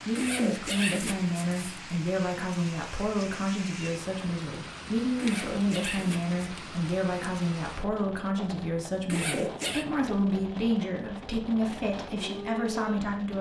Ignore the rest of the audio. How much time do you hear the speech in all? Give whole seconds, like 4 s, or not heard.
13 s.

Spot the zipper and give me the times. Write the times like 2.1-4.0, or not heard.
0.1-1.8, 5.2-6.3, 9.1-9.8.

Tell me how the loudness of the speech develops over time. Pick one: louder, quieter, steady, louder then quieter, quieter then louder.
steady.